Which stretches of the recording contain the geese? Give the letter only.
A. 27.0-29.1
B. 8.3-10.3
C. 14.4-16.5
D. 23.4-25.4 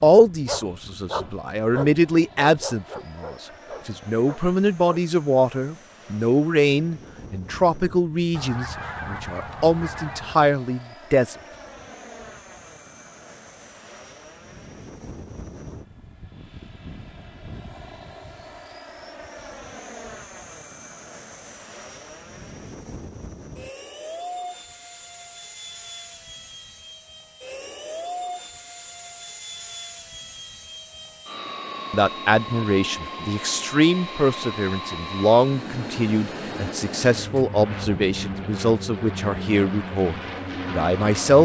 B.